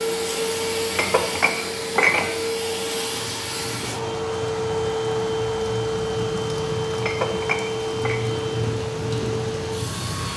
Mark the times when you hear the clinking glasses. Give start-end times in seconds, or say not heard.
0.9-2.5, 7.0-8.2.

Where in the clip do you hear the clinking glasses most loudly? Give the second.
2 s.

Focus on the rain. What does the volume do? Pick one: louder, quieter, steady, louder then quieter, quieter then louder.
louder.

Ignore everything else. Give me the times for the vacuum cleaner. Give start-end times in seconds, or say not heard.
0.0-10.3.